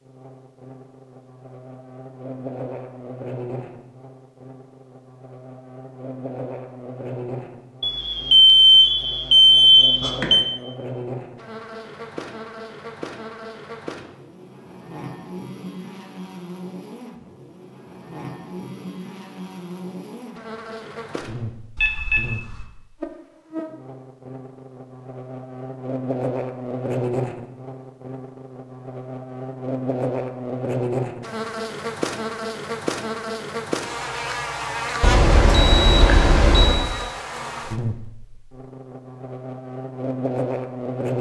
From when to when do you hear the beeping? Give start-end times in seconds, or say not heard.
7.8-10.4, 21.8-22.6, 35.0-36.9.